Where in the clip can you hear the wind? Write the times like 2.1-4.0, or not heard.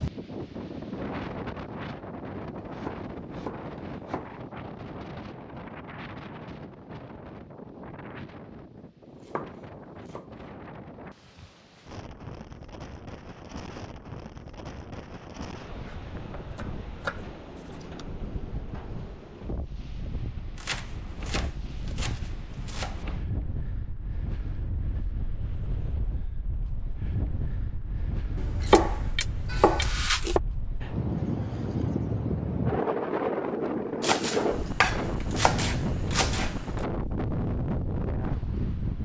0.0-39.0.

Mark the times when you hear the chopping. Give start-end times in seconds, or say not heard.
2.5-4.3, 9.2-10.3, 15.8-17.8, 20.6-23.1, 28.4-30.4, 34.0-36.7.